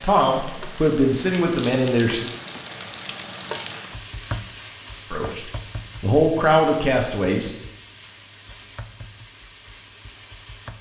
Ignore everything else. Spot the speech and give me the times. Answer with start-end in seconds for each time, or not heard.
0.0-2.3, 5.1-7.5.